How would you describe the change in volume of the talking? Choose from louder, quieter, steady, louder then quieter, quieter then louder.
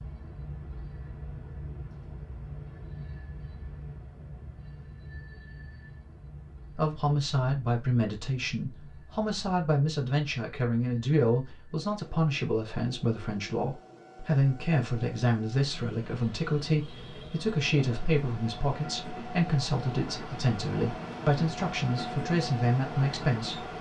steady.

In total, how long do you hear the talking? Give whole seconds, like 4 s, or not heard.
17 s.